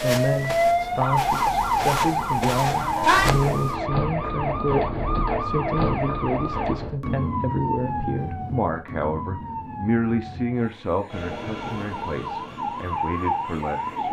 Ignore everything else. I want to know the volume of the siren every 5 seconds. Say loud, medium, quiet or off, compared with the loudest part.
loud, medium, medium.